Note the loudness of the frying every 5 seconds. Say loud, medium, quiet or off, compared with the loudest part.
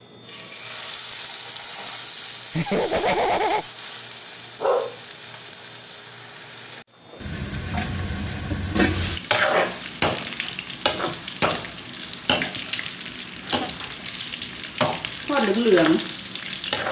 medium, medium, medium, loud.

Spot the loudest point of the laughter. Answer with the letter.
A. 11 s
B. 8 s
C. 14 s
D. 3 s
D.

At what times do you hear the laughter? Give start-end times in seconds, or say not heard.
2.5-3.6, 13.4-13.8.